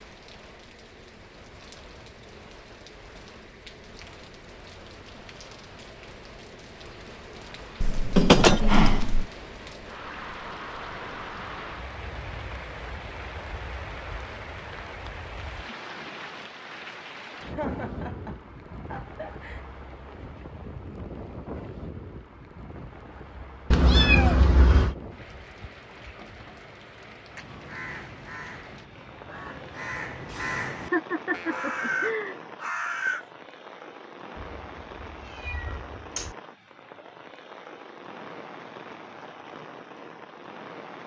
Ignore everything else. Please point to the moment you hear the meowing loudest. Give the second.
8 s.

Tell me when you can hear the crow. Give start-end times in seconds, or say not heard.
27.2-33.2.